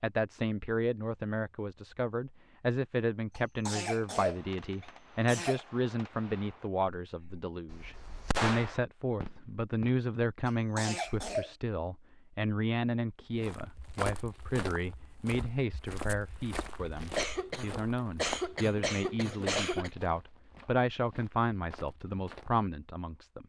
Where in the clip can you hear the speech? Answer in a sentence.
You can hear the speech from 0.0 to 23.4 s.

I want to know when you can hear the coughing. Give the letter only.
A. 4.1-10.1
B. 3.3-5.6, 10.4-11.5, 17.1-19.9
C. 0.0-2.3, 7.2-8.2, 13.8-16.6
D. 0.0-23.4
B.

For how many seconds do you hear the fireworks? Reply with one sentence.
The fireworks can be heard for 6 seconds in total.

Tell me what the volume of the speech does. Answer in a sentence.
The loudness of the speech stays about the same.